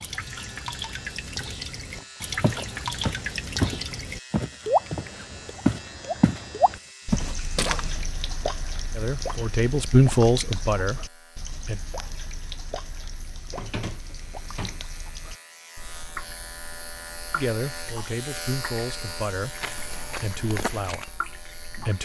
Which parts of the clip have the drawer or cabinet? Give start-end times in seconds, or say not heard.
13.5-14.8.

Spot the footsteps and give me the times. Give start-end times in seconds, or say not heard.
1.9-8.1, 19.6-22.0.